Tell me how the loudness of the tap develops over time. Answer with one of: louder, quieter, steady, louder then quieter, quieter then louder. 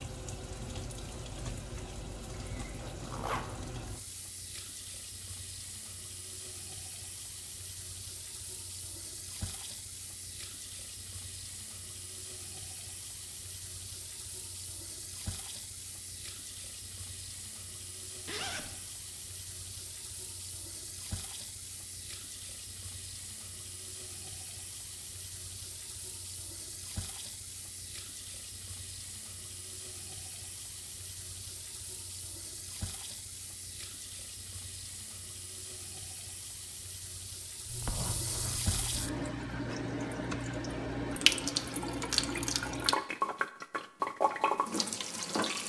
louder.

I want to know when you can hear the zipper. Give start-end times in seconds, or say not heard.
2.7-4.0, 18.2-18.9, 37.6-39.1.